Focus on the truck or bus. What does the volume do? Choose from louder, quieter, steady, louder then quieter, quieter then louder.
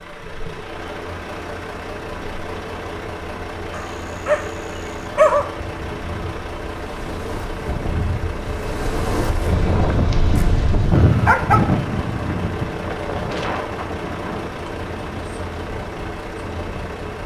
steady.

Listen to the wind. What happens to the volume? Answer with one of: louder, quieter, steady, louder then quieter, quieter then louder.
louder then quieter.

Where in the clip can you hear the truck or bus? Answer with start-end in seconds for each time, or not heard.
0.0-17.2.